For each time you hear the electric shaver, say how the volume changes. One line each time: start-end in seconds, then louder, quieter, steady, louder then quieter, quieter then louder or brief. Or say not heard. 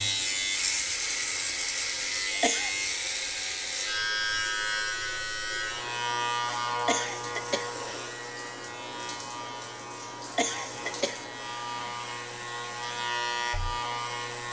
0.0-14.4 quieter then louder.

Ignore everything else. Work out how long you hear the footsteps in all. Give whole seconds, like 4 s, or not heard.
not heard.